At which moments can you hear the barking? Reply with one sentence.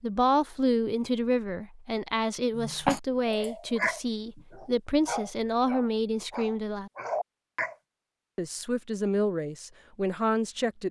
The barking can be heard from 2.5 to 7.8 s.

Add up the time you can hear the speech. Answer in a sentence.
You can hear the speech for 9 seconds altogether.